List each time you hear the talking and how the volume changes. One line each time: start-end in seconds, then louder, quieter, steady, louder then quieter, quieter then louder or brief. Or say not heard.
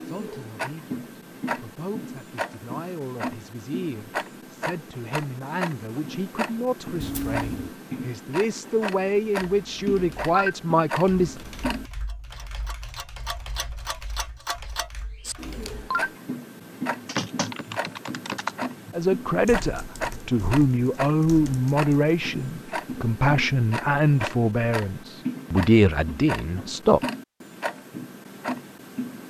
0.0-11.3 louder
18.9-27.0 steady.